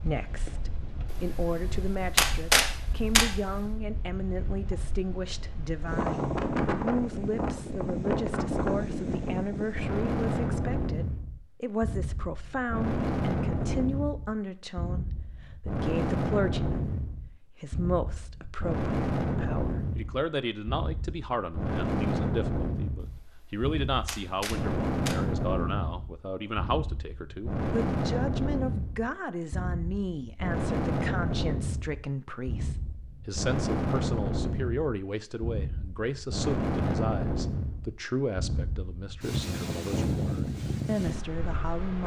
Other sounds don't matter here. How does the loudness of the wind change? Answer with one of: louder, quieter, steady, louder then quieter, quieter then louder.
steady.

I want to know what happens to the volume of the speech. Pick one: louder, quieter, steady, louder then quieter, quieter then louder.
steady.